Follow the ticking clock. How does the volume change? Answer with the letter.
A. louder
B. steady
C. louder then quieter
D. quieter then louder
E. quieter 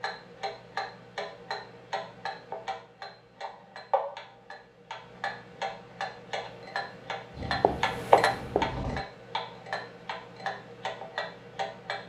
C.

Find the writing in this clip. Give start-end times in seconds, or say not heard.
7.3-9.0.